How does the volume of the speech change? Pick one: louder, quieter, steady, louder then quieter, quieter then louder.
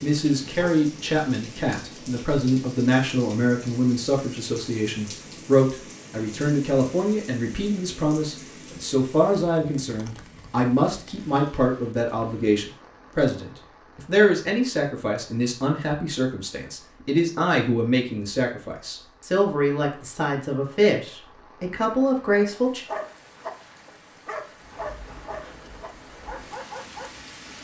steady.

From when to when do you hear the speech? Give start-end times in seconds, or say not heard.
0.0-22.9.